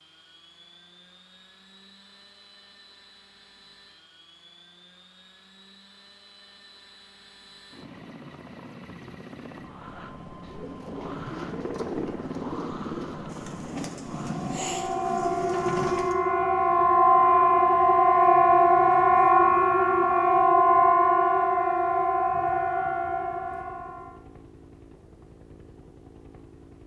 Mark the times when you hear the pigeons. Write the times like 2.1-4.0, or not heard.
10.4-16.1.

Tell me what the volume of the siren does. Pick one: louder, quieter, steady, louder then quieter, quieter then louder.
louder then quieter.